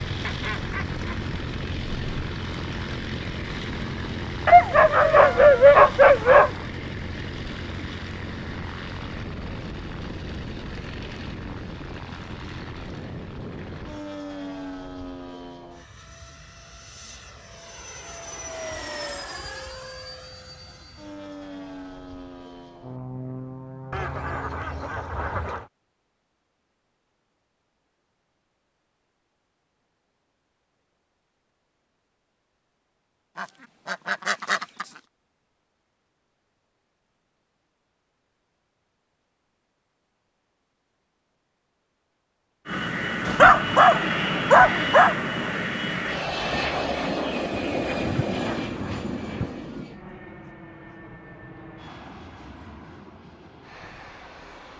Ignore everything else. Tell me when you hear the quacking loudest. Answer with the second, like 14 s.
34 s.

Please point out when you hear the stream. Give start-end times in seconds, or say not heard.
not heard.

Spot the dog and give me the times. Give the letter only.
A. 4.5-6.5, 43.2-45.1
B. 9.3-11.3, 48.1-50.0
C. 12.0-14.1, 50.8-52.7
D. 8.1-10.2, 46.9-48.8
A.